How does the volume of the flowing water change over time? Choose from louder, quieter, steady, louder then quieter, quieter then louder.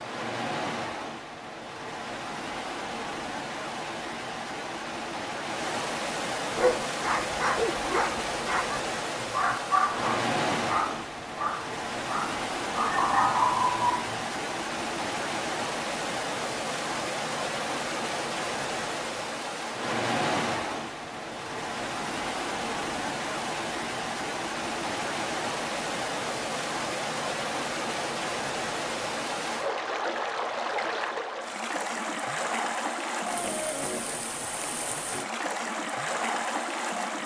steady.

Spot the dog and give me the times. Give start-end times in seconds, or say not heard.
6.5-14.2.